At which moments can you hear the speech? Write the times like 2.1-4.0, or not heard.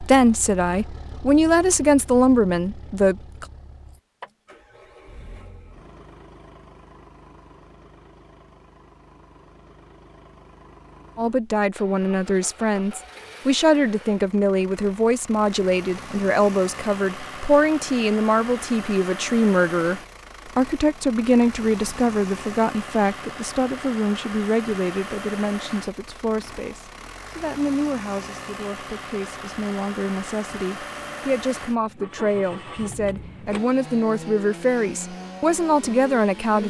0.0-3.5, 11.2-36.6.